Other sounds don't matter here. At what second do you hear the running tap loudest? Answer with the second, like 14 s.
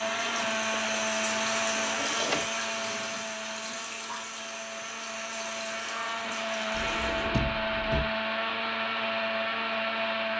2 s.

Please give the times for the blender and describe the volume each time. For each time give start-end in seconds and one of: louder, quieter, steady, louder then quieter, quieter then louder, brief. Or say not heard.
0.0-10.3 quieter then louder.